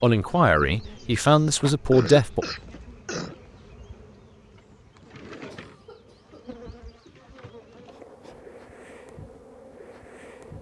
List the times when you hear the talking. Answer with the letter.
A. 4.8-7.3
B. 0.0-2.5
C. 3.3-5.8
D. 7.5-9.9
B.